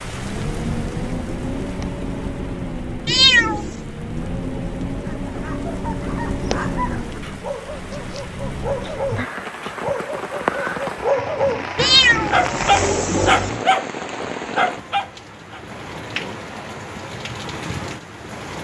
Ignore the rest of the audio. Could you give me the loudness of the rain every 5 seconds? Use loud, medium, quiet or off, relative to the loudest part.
loud, loud, loud, medium.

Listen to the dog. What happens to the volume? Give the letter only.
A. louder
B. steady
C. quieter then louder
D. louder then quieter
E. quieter
A.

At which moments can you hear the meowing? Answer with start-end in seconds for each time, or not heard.
3.0-3.8, 11.8-13.6.